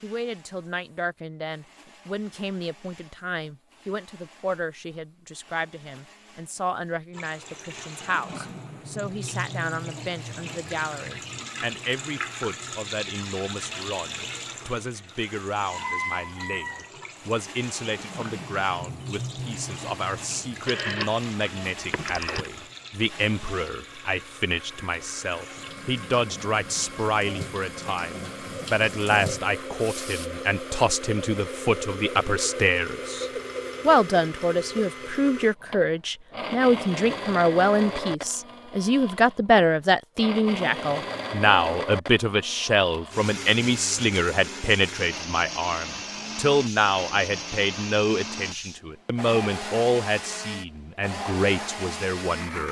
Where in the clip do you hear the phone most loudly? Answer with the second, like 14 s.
21 s.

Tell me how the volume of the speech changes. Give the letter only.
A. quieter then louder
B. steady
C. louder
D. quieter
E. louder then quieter
C.